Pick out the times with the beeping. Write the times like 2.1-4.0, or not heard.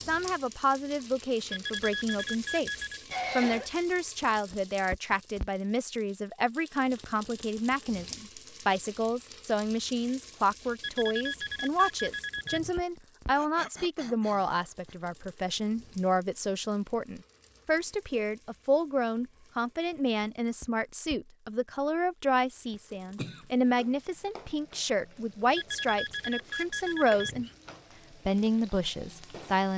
1.5-3.0, 10.8-12.8, 25.6-27.6.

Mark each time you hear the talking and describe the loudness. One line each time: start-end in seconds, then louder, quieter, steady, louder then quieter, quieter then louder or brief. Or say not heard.
0.0-27.5 steady
28.2-29.7 brief.